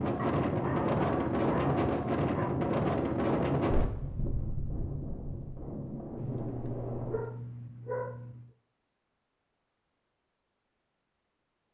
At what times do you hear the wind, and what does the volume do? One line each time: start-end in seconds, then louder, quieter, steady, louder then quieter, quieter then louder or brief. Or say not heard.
0.0-7.2 quieter.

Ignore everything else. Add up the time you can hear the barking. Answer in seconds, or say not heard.
5 s.